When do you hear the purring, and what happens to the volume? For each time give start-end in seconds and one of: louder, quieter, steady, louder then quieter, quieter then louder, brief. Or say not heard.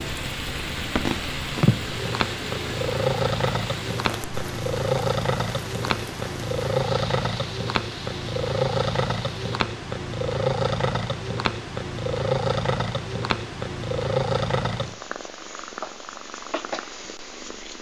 0.0-17.7 steady.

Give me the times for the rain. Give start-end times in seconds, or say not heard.
0.0-9.6.